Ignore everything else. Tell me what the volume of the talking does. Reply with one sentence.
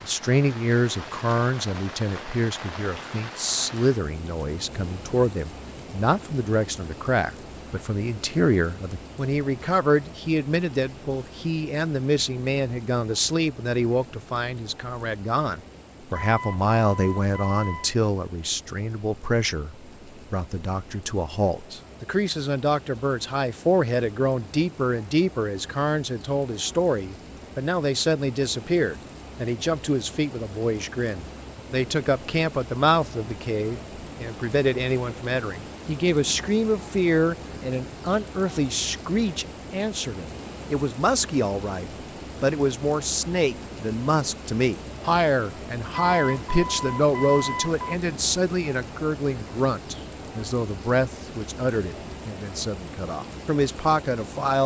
The loudness of the talking stays about the same.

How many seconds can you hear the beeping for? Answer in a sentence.
You can hear the beeping for 4 seconds altogether.